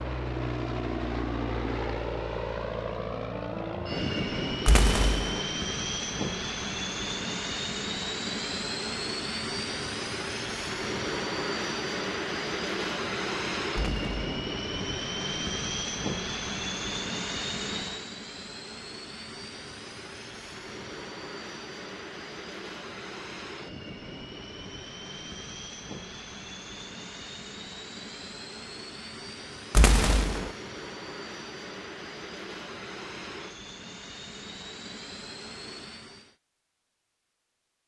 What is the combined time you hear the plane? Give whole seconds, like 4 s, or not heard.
36 s.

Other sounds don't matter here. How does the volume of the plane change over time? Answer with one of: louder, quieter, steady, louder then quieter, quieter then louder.
quieter.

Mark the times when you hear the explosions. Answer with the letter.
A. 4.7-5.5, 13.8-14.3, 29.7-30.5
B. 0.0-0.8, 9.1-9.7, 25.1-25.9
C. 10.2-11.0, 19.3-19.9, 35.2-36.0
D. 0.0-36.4
A.